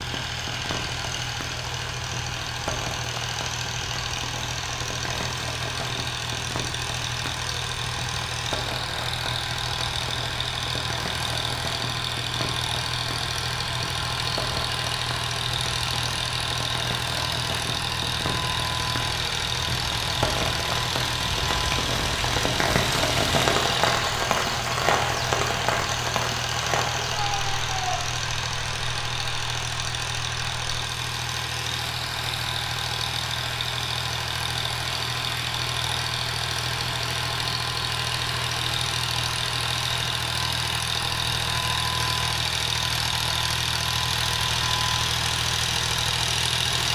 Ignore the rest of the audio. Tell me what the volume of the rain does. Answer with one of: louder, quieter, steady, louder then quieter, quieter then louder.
louder then quieter.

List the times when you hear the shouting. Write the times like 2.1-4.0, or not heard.
27.0-28.0.